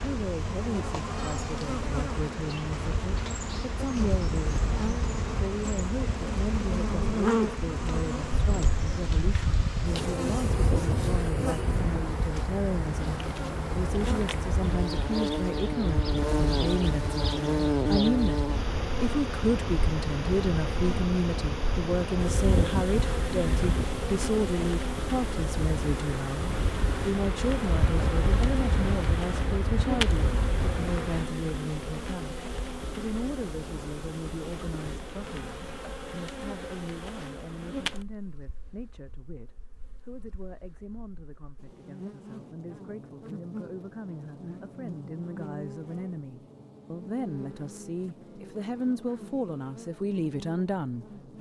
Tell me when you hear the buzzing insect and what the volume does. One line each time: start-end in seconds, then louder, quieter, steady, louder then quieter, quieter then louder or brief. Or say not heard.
0.0-51.3 quieter.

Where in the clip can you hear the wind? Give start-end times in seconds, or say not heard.
0.0-31.3.